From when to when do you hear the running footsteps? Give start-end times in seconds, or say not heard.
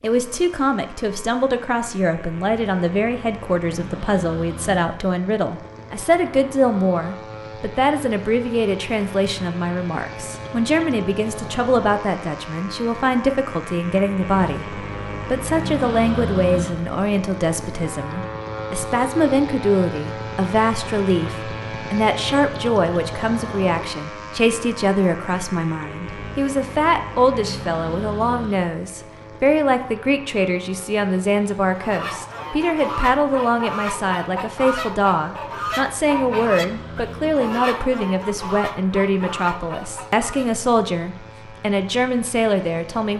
not heard.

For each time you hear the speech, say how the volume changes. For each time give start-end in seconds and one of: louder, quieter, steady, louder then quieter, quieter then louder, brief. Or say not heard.
0.0-43.1 steady.